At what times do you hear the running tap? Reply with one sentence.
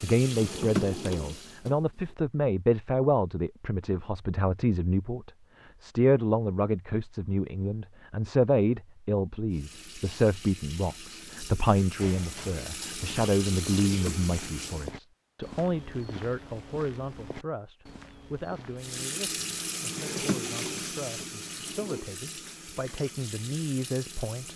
The running tap can be heard from 0.0 to 1.6 s, from 9.5 to 14.9 s and from 18.8 to 24.5 s.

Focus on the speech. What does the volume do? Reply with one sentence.
The volume of the speech goes down.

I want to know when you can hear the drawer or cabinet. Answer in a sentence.
The drawer or cabinet can be heard from 0.3 to 1.8 s, from 13.8 to 14.3 s and from 19.9 to 22.1 s.